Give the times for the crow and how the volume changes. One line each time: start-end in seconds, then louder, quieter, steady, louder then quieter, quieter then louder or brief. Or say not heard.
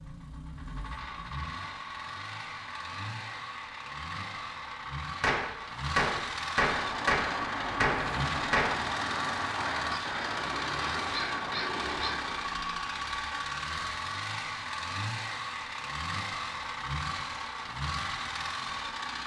6.7-12.6 steady.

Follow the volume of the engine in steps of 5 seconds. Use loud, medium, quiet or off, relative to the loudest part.
medium, loud, loud, loud.